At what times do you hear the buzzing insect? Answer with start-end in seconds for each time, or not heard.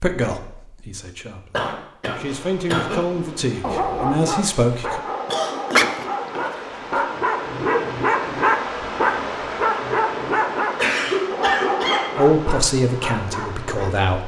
not heard.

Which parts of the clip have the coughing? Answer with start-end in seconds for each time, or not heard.
1.5-3.0, 5.3-5.9, 10.8-12.1.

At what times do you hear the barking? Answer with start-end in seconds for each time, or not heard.
3.6-13.9.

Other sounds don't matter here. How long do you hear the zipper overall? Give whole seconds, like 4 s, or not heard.
2 s.